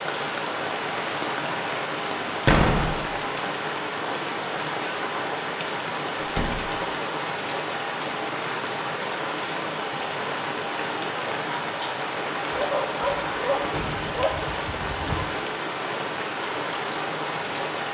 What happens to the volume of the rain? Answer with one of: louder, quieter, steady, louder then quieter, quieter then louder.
steady.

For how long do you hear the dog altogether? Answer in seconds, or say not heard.
3 s.